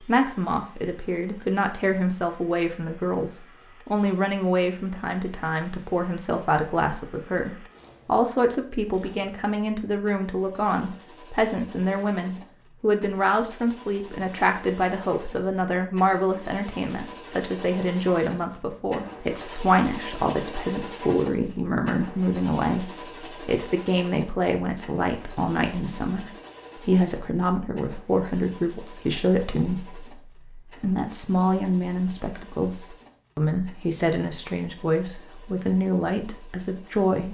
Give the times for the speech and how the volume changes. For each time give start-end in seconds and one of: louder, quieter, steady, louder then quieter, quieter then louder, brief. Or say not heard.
0.0-37.2 steady.